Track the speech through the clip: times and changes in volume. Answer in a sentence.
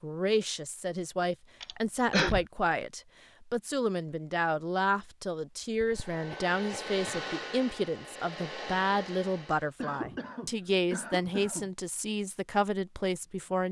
You can hear the speech from 0.0 to 13.6 s, at a steady volume.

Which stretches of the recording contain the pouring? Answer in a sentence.
The pouring can't be heard in this clip.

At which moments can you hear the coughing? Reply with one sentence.
You can hear the coughing from 1.6 to 2.5 s, from 5.8 to 7.2 s and from 9.8 to 11.7 s.